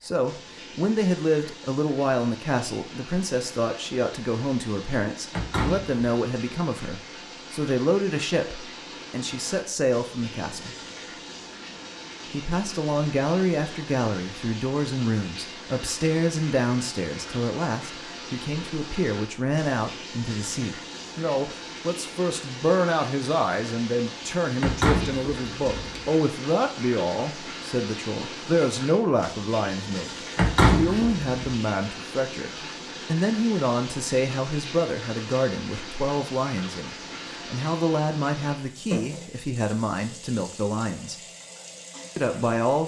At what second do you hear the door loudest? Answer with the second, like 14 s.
31 s.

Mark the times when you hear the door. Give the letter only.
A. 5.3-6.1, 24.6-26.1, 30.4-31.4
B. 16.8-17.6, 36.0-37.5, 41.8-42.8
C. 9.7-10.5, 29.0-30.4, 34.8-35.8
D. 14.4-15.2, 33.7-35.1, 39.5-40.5
A.